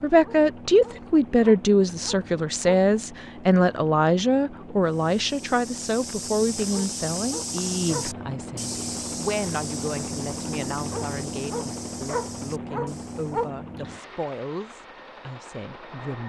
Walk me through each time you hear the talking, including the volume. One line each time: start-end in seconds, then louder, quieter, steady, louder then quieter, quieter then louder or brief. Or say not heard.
0.0-16.2 quieter.